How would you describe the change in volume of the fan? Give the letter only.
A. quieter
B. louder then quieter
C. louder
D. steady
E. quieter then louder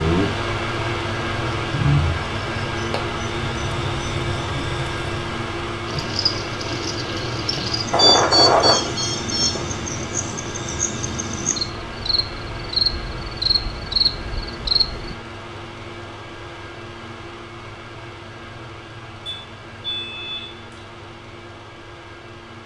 A.